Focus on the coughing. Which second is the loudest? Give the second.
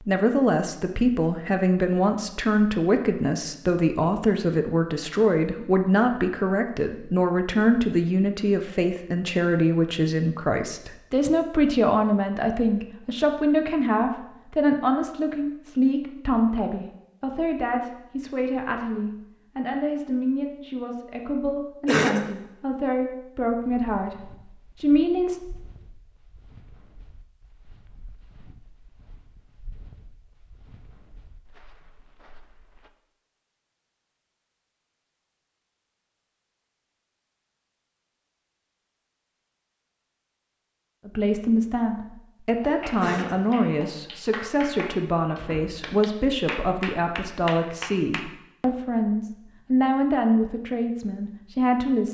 22 s.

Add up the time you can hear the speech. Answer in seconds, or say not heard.
36 s.